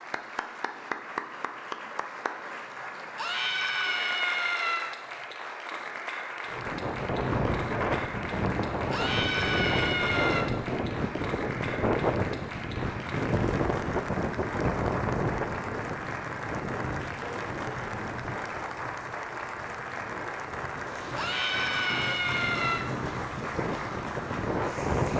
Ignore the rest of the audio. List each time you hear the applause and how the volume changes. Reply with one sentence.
You can hear the applause from 0.0 to 25.1 s, at a steady volume.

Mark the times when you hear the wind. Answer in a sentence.
You can hear the wind from 6.5 to 25.1 s.